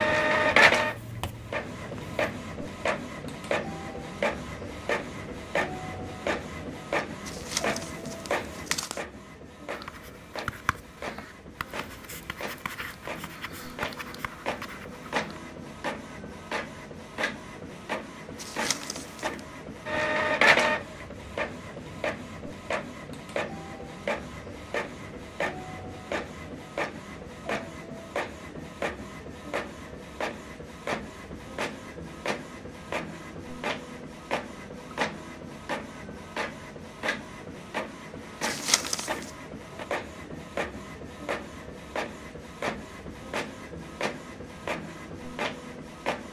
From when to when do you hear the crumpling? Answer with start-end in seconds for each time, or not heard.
7.2-9.1, 18.4-19.4, 38.4-39.3.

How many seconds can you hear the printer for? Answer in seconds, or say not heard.
46 s.